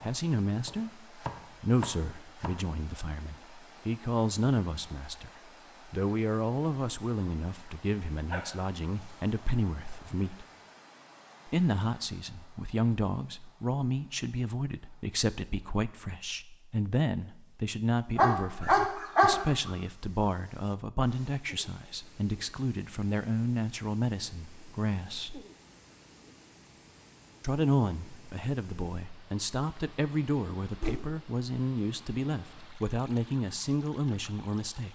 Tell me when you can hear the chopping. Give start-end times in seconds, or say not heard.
0.0-2.6.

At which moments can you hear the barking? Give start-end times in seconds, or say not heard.
8.3-9.2, 18.1-19.7.